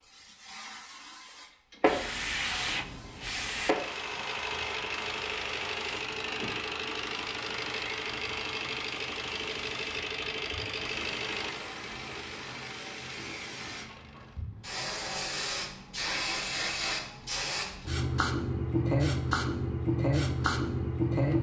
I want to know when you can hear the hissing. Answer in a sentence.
You can hear the hissing from 0.0 to 21.3 s.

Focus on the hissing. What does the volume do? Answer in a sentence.
The loudness of the hissing goes down, then up.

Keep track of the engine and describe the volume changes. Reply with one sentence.
The loudness of the engine goes down.